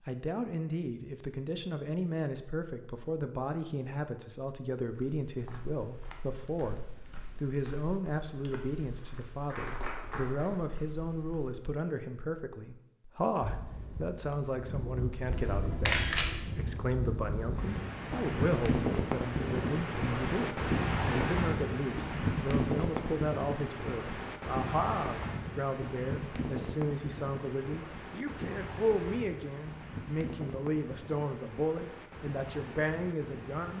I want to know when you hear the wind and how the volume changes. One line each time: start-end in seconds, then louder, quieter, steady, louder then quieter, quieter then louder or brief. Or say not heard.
13.4-33.7 louder then quieter.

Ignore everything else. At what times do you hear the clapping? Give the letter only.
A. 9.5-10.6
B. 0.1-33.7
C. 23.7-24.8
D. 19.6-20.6
A.